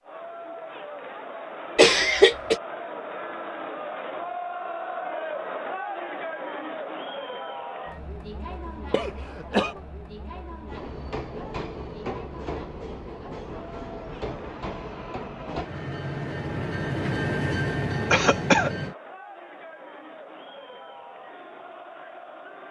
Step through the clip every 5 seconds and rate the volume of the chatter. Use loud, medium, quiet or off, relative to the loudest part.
loud, loud, medium, medium, medium.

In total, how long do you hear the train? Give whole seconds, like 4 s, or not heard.
8 s.